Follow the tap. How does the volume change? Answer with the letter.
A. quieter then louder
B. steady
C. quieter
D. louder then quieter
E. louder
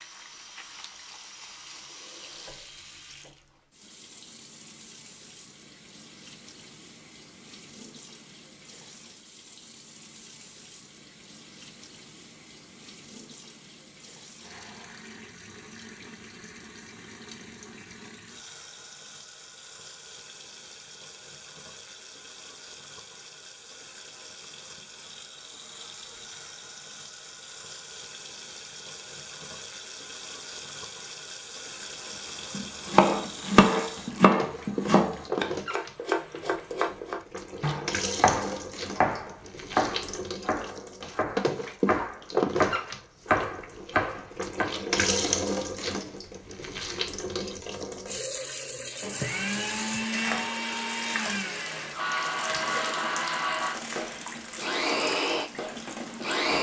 E.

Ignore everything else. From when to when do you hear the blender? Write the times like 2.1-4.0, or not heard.
49.0-56.5.